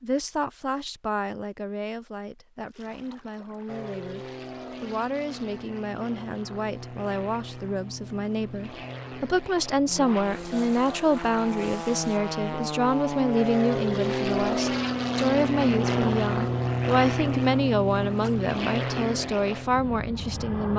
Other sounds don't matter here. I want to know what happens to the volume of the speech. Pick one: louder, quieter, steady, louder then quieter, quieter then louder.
louder.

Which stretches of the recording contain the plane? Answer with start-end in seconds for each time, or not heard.
3.6-20.7.